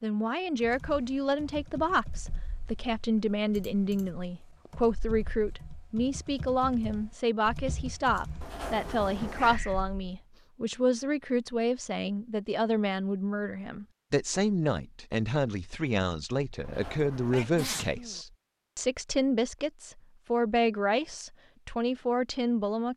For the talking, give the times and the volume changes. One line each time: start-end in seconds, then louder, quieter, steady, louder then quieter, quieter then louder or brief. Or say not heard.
0.0-22.9 steady.